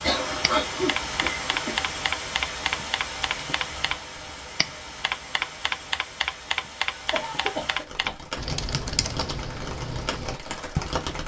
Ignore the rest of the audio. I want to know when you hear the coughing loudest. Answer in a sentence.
The loudest moment of the coughing is at 1 second.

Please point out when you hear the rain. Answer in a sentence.
You can hear the rain from 0.0 to 11.2 s.